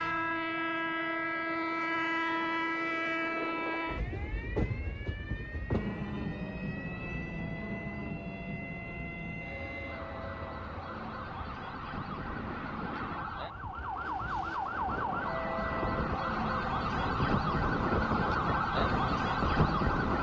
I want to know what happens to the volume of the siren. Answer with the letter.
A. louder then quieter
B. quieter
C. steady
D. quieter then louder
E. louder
E.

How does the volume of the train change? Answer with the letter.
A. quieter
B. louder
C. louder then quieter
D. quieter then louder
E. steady
D.